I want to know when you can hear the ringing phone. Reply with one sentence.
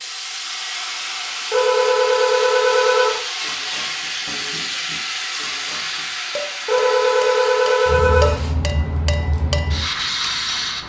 You can hear the ringing phone from 1.5 to 3.2 s and from 6.7 to 8.4 s.